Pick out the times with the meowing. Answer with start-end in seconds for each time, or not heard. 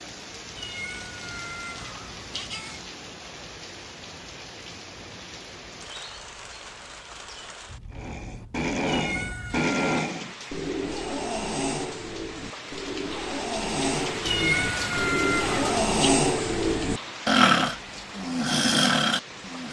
0.6-2.9, 8.8-10.0, 14.2-16.1.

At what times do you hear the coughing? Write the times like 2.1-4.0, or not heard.
not heard.